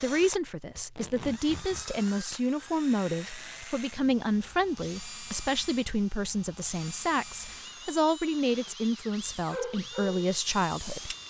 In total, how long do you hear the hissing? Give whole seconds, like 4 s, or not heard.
2 s.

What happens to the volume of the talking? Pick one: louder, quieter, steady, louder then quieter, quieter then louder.
steady.